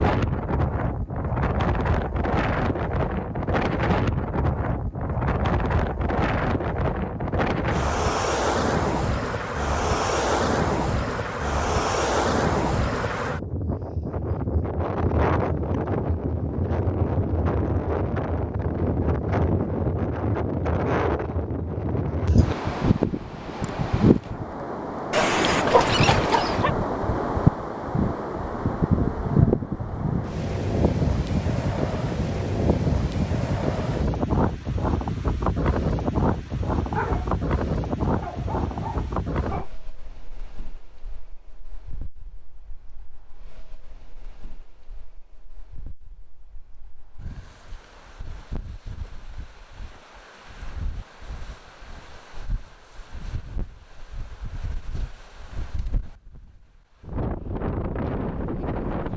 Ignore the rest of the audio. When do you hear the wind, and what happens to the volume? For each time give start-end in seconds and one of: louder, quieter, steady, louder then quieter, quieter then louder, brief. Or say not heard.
0.0-59.1 quieter.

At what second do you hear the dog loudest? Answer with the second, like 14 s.
26 s.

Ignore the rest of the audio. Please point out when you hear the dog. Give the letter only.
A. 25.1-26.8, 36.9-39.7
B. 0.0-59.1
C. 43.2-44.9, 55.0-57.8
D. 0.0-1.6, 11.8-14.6
A.